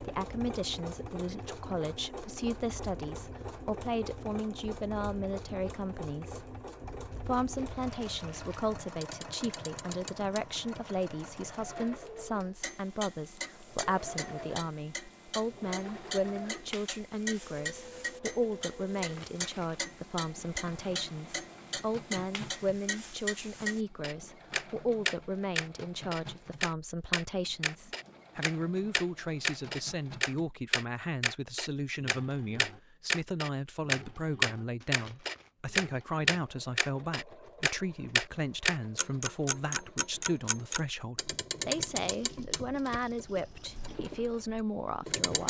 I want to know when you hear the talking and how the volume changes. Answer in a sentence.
The talking can be heard from 0.0 to 45.4 s, at a steady volume.